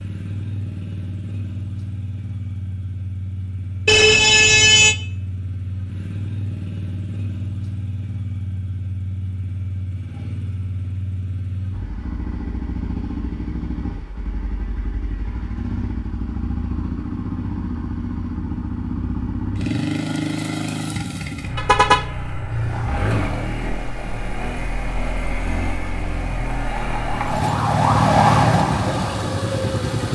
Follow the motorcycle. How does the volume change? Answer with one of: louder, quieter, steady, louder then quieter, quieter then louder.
louder.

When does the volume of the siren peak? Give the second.
28 s.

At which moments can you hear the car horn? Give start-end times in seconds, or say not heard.
3.9-5.0, 21.6-22.1.